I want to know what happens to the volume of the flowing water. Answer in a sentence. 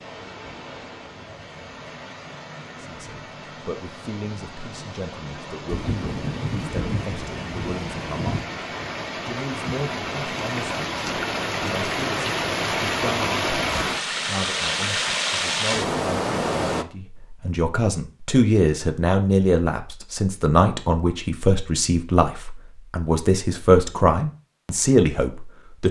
The volume of the flowing water goes up.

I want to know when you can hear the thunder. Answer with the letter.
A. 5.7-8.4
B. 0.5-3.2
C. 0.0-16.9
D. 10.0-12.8
A.